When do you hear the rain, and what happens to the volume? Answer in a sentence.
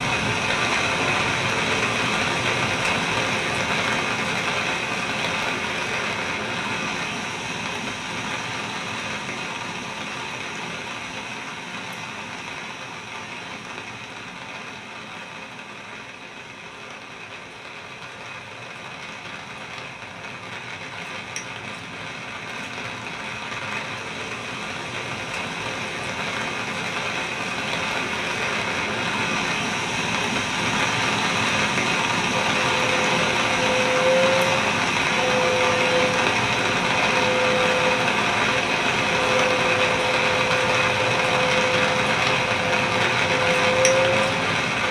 You can hear the rain from 0.0 to 44.8 s, getting quieter then louder.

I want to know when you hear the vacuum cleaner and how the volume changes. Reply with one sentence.
The vacuum cleaner can be heard from 32.3 to 44.8 s, at a steady volume.